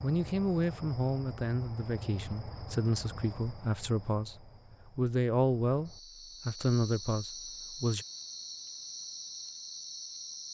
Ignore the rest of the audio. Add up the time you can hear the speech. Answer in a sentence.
The speech can be heard for 8 seconds in total.